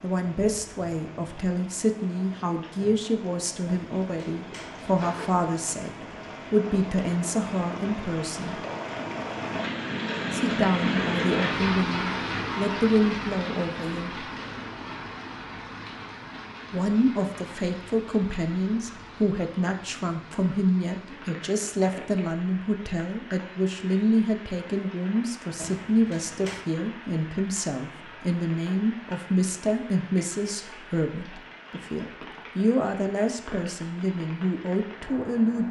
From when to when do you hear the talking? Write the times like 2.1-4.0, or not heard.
0.0-8.6, 10.3-14.2, 16.7-35.6.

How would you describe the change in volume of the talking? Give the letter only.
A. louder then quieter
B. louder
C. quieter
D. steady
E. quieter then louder
D.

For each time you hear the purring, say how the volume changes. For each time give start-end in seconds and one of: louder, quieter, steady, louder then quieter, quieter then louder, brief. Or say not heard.
not heard.